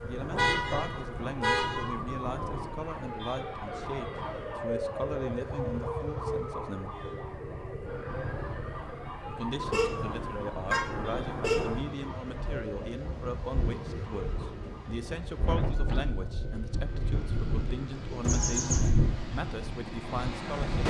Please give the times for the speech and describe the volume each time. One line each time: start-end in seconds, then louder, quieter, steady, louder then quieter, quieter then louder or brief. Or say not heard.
0.0-7.0 steady
9.3-20.8 steady.